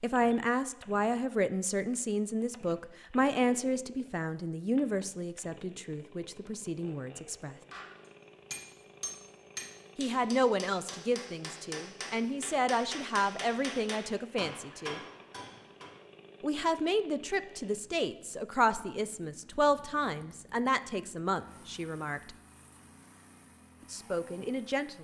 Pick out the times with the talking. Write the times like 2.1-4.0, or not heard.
0.0-7.5, 9.9-15.0, 16.4-22.3, 23.9-25.0.